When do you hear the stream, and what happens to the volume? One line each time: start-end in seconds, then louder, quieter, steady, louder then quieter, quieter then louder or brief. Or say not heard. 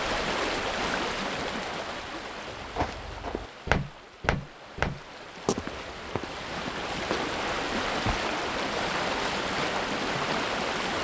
0.0-10.9 quieter then louder.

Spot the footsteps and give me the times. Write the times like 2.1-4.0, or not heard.
2.5-8.2.